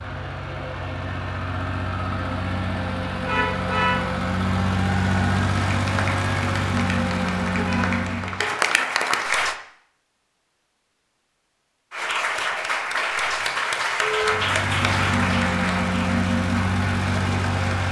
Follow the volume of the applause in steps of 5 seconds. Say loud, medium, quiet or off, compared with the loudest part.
off, loud, loud, medium.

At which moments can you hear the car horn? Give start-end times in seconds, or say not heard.
3.2-4.0, 7.5-8.6, 14.0-14.4.